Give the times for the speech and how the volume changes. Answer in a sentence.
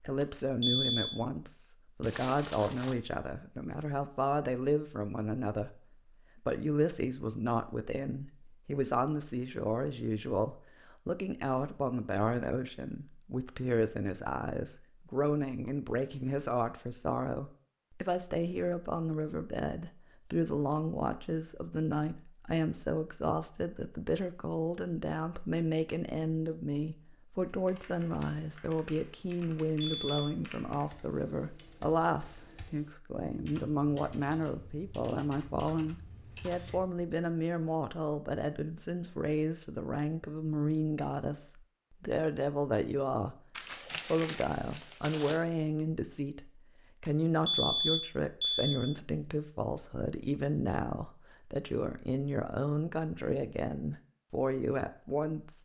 You can hear the speech from 0.0 to 43.4 s, at a steady volume; and from 44.0 to 55.5 s, at a steady volume.